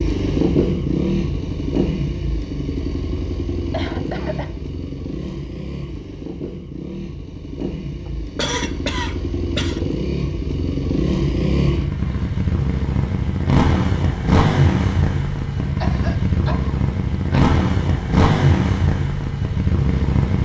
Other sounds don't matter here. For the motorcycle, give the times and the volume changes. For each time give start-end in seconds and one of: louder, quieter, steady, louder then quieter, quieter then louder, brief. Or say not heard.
0.0-20.4 quieter then louder.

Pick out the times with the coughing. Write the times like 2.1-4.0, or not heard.
3.7-4.5, 8.1-9.8, 15.8-17.6.